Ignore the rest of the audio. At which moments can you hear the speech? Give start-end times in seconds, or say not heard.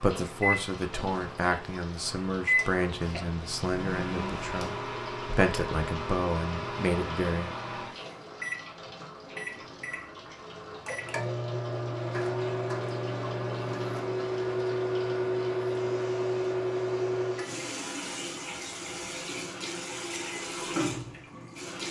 0.0-7.5.